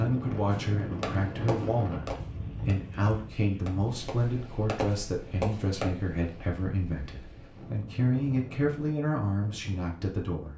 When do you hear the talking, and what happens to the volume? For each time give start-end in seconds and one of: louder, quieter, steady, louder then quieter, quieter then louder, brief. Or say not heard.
0.0-10.5 steady.